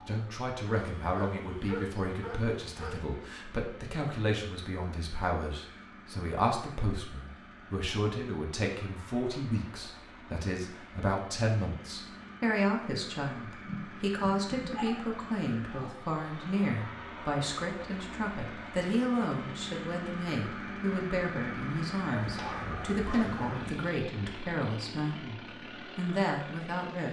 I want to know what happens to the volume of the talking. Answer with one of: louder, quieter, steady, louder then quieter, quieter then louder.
steady.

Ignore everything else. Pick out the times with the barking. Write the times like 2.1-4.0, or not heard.
0.7-3.0, 13.7-15.1, 22.1-23.9.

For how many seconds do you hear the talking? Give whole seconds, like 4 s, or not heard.
27 s.